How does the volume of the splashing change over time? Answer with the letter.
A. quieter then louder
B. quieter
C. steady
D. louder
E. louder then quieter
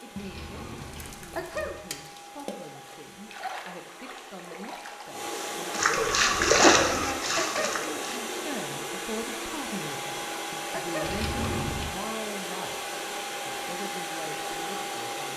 D.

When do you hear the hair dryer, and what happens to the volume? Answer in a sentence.
The hair dryer can be heard from 0.0 to 15.3 s, getting louder.